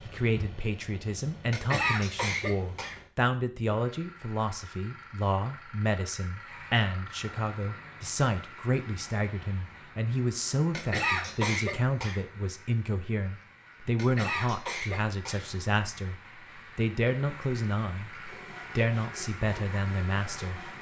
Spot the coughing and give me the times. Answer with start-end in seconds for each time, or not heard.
1.5-3.0, 10.7-12.2, 13.9-15.4.